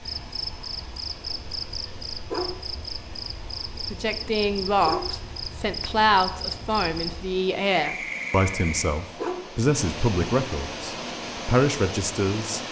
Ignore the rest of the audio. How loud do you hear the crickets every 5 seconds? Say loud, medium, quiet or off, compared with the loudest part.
loud, loud, off.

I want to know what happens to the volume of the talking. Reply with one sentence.
The volume of the talking stays about the same.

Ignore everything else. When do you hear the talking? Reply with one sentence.
You can hear the talking from 3.9 to 12.6 s.